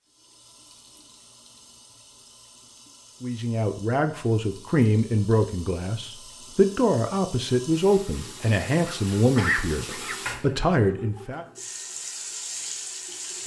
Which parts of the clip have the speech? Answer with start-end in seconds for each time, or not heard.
3.2-11.4.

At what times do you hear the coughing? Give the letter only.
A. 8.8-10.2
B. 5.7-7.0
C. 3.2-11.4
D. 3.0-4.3
A.